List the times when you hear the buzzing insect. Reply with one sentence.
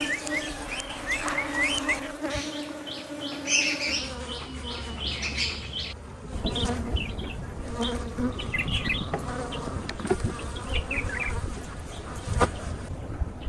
The buzzing insect can be heard from 0.0 to 13.4 s.